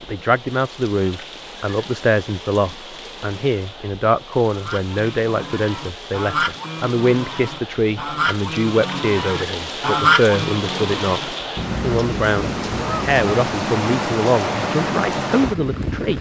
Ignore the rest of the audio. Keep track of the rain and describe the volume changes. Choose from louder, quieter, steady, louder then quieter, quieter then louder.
louder.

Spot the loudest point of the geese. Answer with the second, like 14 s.
10 s.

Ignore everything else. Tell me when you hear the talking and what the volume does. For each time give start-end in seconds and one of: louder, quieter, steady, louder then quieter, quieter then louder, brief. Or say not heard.
0.0-16.1 steady.